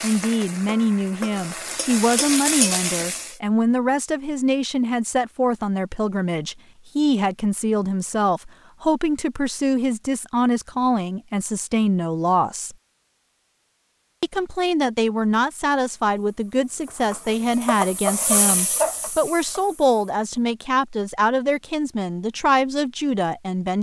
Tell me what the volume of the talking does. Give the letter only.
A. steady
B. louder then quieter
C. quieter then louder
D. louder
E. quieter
A.